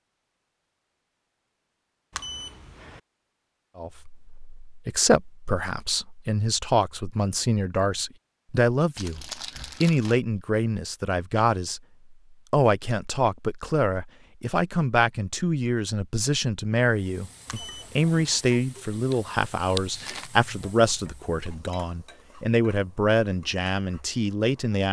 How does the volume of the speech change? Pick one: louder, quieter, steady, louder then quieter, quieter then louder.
steady.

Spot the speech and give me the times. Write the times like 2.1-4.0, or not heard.
3.8-24.8.